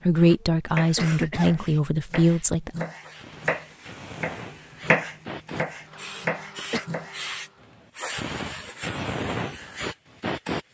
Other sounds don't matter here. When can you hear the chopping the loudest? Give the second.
5 s.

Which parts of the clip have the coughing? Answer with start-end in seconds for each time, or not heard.
0.4-1.6, 5.9-6.8.